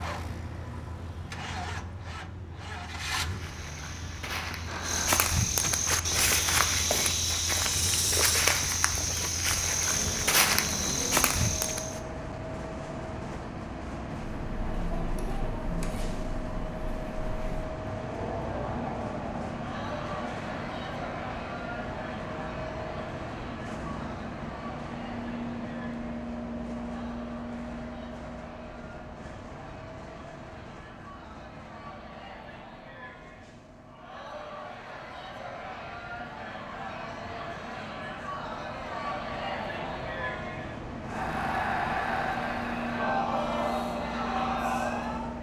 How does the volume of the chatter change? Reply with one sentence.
The loudness of the chatter goes down, then up.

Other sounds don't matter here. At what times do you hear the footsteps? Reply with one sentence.
You can hear the footsteps from 3.2 to 12.0 s.